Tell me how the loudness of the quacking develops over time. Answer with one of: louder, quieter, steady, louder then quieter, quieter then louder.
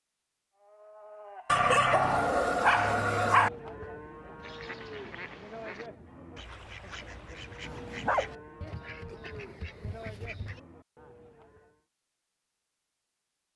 steady.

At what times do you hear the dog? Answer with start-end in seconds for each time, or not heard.
1.4-3.5, 7.6-8.3.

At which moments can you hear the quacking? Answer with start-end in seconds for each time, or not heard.
4.4-10.6.